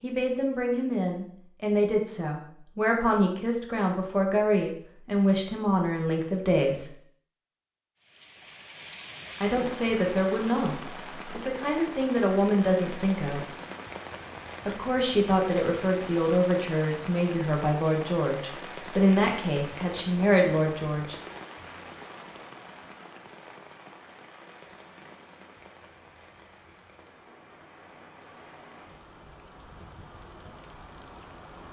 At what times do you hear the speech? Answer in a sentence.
The speech can be heard from 0.0 to 7.0 s, from 9.4 to 13.4 s and from 14.7 to 21.1 s.